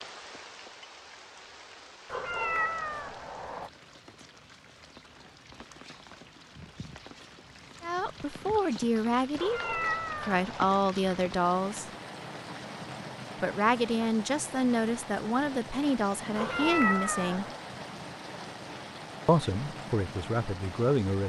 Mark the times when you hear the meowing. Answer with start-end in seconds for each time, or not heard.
2.1-3.7, 9.3-10.8, 16.4-17.6.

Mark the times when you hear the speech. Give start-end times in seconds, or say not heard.
7.8-11.9, 13.4-17.4, 19.2-21.2.